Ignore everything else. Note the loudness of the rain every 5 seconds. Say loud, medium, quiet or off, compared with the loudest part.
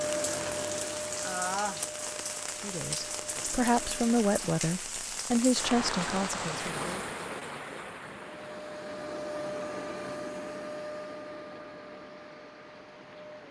loud, loud, quiet.